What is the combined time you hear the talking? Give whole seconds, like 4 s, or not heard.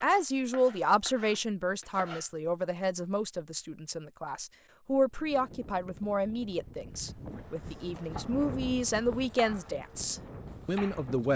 11 s.